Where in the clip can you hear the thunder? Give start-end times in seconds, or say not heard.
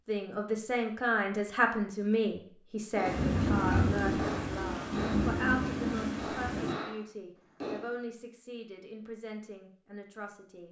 3.0-6.8.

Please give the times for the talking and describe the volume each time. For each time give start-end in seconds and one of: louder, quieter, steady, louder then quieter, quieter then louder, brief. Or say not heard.
0.1-10.6 quieter.